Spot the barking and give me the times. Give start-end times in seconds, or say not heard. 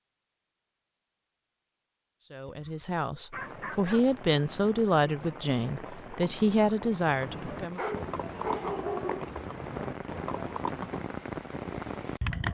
2.5-4.0, 7.7-9.3.